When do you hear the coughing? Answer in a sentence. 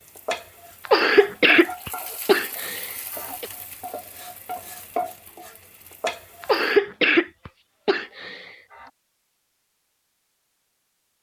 You can hear the coughing from 0.8 to 3.5 s and from 6.4 to 8.5 s.